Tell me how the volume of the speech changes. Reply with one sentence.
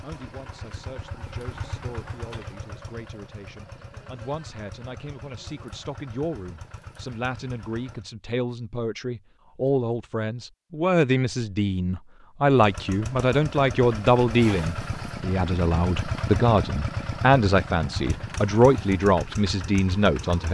The loudness of the speech goes up.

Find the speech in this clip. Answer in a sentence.
You can hear the speech from 0.0 to 20.4 s.